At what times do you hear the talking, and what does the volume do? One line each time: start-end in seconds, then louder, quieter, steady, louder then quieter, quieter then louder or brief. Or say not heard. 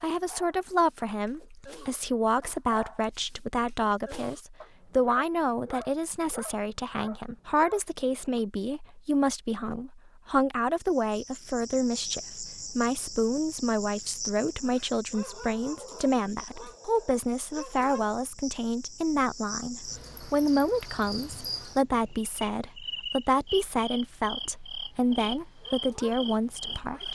0.0-27.0 steady.